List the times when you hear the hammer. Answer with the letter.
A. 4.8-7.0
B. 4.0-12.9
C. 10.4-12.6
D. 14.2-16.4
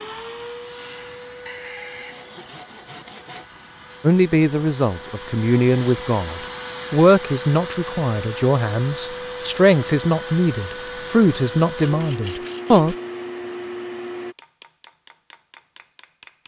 D.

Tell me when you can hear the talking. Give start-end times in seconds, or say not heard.
4.0-12.9.